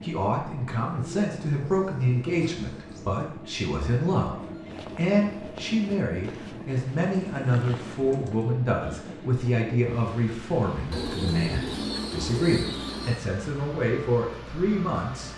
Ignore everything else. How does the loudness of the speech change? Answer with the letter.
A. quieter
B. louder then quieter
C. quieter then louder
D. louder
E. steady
E.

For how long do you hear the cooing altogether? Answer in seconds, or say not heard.
6 s.